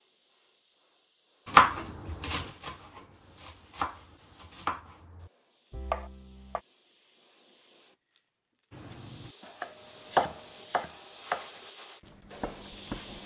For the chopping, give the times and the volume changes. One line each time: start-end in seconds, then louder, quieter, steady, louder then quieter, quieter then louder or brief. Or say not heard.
1.4-6.6 quieter then louder
8.7-13.2 louder then quieter.